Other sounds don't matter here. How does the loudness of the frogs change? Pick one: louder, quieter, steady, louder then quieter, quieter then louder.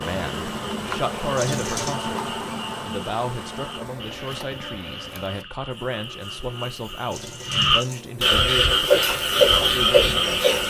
louder.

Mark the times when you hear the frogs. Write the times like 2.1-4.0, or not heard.
0.1-10.6.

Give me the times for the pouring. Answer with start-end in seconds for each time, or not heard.
1.4-2.0, 7.1-8.1.